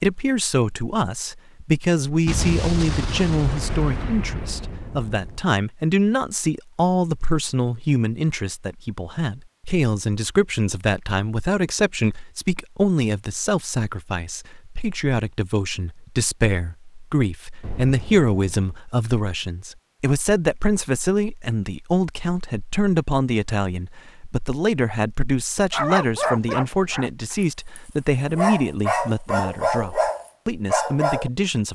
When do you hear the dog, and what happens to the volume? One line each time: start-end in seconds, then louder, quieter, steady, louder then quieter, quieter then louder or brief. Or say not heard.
25.7-31.3 quieter then louder.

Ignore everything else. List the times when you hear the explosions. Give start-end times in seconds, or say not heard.
2.2-5.4, 17.6-18.8.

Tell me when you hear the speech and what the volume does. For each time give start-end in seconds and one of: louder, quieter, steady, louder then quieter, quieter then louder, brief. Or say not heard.
0.0-31.7 steady.